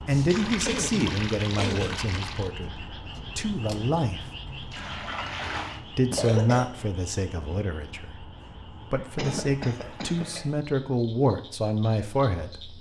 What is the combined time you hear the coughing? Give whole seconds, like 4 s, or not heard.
4 s.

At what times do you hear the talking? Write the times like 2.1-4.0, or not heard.
0.1-4.3, 6.0-8.3, 8.9-12.7.